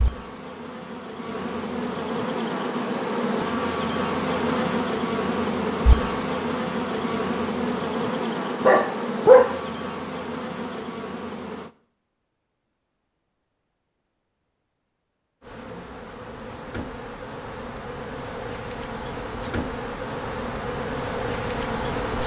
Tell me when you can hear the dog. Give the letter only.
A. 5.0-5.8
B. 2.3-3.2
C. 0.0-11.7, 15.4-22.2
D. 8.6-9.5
D.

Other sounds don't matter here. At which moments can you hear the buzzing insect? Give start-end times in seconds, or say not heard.
0.0-11.7, 15.4-22.2.